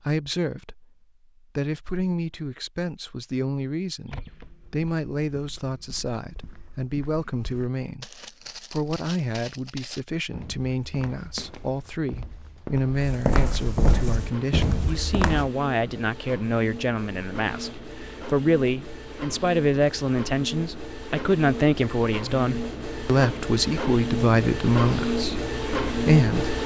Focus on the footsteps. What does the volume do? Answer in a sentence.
The loudness of the footsteps goes up.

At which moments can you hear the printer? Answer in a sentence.
You can hear the printer from 14.1 to 26.6 s.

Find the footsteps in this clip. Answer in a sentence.
The footsteps can be heard from 4.0 to 15.5 s.